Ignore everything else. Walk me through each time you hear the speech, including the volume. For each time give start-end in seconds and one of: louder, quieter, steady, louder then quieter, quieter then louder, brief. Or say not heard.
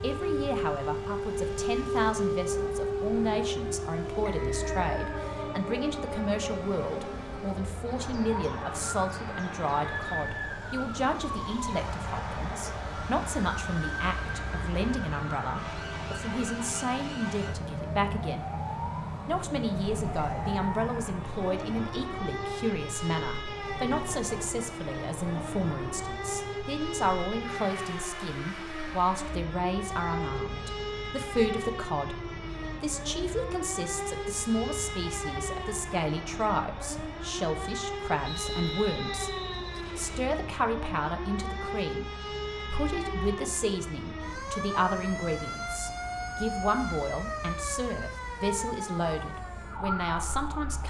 0.0-18.5 steady
19.2-50.8 steady.